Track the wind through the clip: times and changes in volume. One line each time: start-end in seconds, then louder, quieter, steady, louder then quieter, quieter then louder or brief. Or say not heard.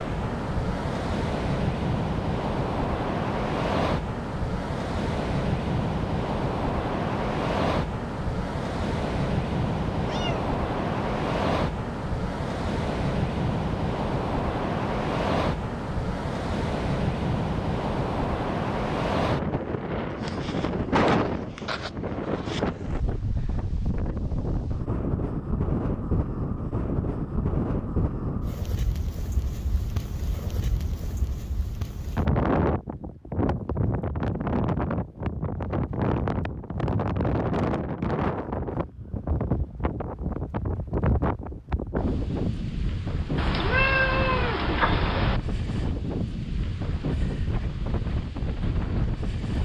0.0-49.5 steady.